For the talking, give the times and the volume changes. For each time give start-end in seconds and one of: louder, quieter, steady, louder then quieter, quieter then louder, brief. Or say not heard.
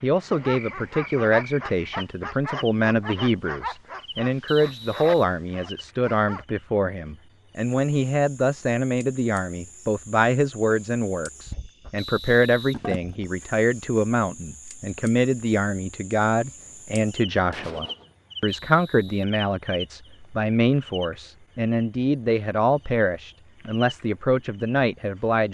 0.0-25.4 steady.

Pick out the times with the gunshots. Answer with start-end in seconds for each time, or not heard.
16.6-18.1.